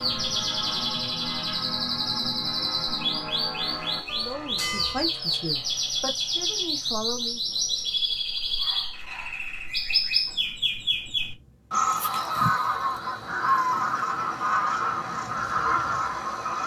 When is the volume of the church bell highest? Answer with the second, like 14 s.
5 s.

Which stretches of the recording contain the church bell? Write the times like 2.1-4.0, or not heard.
0.0-5.1.